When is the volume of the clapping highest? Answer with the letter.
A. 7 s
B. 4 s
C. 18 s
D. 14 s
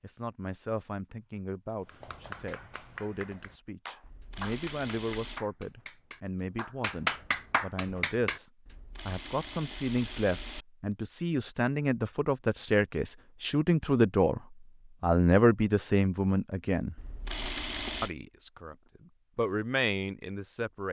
A.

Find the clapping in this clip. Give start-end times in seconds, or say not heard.
1.9-8.4.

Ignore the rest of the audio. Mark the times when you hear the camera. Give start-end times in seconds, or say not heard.
4.0-5.5, 8.7-10.7, 16.9-18.1.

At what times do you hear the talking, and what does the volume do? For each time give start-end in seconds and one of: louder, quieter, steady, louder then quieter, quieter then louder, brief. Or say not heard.
0.0-14.4 louder
15.0-16.9 brief
18.0-18.8 brief
19.4-20.8 brief.